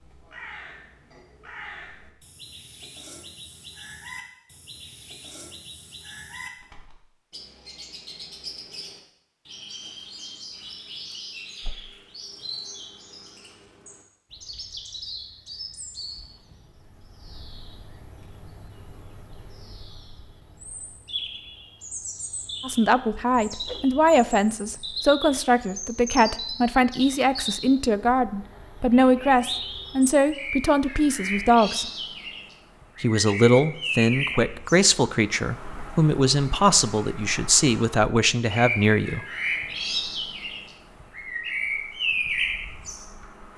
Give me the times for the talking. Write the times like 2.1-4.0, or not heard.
22.6-31.9, 33.0-39.2.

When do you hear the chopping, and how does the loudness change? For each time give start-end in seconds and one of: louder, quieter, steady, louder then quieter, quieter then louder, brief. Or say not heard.
not heard.